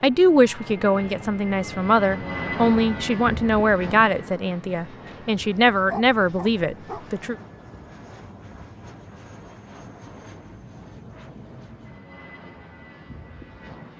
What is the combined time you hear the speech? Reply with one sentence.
The speech can be heard for 7 seconds in total.